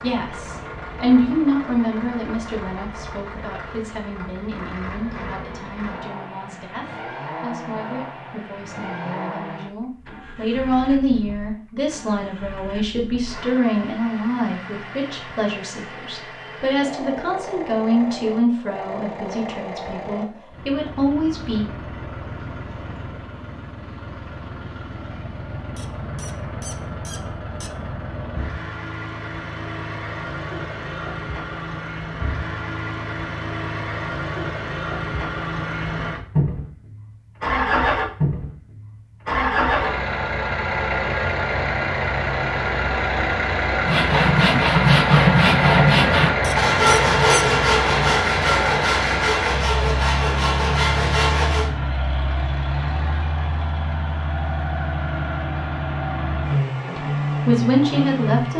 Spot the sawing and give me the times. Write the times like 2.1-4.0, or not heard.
43.8-51.7.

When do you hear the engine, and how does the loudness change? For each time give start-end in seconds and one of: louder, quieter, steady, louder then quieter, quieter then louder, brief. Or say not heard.
0.0-58.5 louder.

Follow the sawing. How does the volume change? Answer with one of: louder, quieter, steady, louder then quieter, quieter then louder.
quieter.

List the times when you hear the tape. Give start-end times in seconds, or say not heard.
not heard.